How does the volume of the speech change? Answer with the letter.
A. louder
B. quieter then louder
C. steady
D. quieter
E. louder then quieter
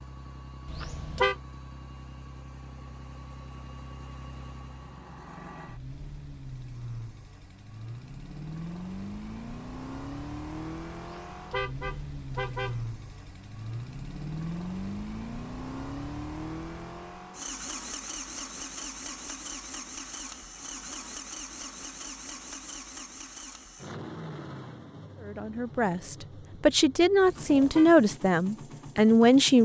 A.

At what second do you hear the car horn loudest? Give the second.
1 s.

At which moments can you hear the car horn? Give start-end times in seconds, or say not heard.
0.7-1.4, 11.2-12.8, 27.2-27.9.